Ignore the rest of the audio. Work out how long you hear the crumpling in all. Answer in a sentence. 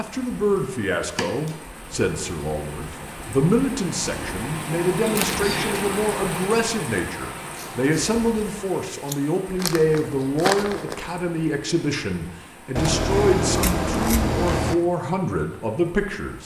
You can hear the crumpling for 2 seconds altogether.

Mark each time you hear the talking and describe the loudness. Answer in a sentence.
You can hear the talking from 0.0 to 16.4 s, at a steady volume.